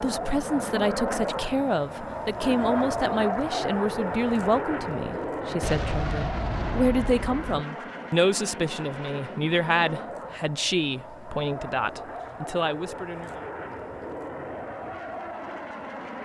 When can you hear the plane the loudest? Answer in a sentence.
The volume of the plane peaks at 3 seconds.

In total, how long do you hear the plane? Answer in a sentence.
The plane can be heard for 16 seconds in total.